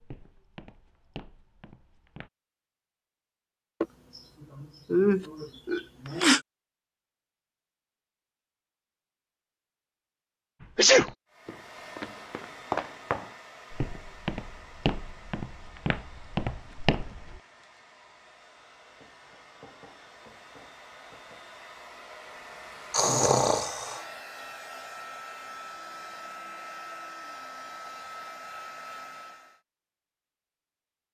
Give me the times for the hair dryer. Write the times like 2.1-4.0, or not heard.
11.3-29.6.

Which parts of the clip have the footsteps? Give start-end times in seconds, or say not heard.
0.0-2.3, 10.6-17.4.